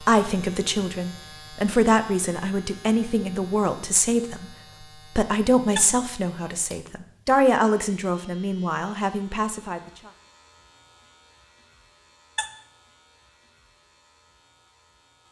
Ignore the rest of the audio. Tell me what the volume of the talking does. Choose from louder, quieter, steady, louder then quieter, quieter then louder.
quieter.